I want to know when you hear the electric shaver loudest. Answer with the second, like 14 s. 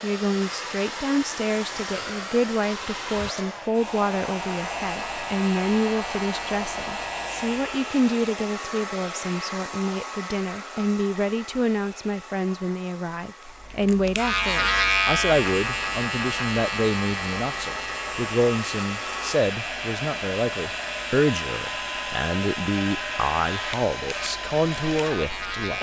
15 s.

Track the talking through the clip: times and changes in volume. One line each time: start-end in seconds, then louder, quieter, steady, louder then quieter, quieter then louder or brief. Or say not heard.
0.0-25.7 steady.